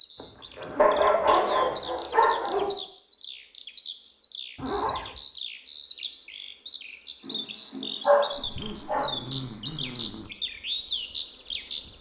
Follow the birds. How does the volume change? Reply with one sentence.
The volume of the birds goes up.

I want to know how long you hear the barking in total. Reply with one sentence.
You can hear the barking for 4 seconds altogether.